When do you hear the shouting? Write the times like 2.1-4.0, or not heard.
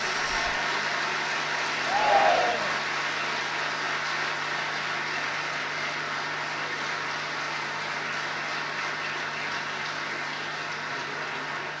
1.9-2.8.